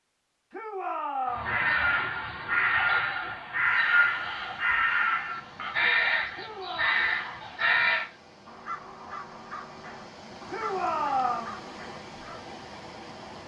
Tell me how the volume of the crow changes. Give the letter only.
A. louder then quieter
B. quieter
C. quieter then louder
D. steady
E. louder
B.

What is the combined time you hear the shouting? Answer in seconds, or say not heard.
3 s.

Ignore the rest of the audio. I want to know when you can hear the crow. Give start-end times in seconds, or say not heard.
1.3-12.4.